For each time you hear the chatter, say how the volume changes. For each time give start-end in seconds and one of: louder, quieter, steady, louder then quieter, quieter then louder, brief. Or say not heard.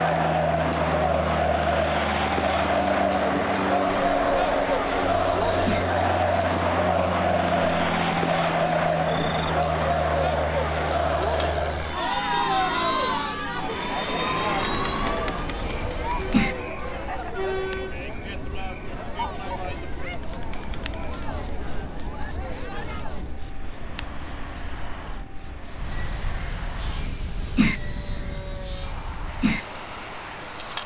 0.0-23.5 quieter.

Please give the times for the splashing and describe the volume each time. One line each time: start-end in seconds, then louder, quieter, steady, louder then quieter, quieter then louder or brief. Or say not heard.
not heard.